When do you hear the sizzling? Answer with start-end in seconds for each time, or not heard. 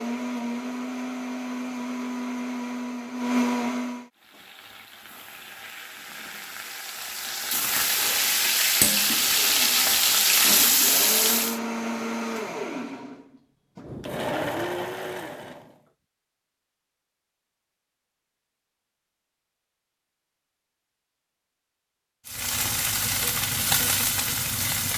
4.2-11.6, 22.2-24.9.